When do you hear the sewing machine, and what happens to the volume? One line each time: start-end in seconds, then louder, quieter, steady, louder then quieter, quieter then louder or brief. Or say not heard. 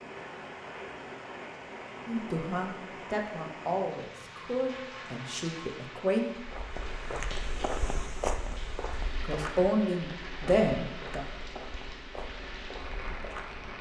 not heard.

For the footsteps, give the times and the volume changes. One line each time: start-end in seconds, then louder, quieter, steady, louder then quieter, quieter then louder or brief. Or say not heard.
6.3-13.7 quieter.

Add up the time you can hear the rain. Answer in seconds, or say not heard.
14 s.